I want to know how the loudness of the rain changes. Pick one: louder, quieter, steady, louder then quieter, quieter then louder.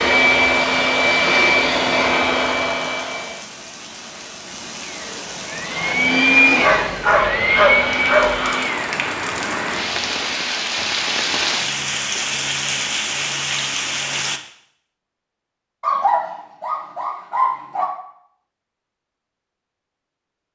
louder.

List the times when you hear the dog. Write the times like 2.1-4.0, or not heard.
6.6-8.3, 15.8-17.9.